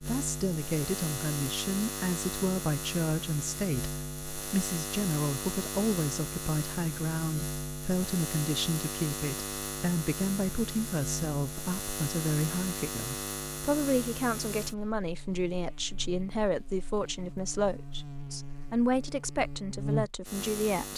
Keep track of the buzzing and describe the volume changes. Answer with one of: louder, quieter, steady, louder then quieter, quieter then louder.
steady.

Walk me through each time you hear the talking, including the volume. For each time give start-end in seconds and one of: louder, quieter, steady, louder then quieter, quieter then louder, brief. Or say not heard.
0.0-20.9 steady.